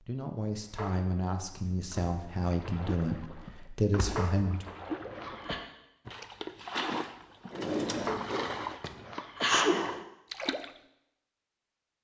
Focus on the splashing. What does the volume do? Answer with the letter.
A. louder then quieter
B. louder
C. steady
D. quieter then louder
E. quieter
B.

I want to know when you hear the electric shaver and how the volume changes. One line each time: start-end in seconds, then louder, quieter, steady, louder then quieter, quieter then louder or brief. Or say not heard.
not heard.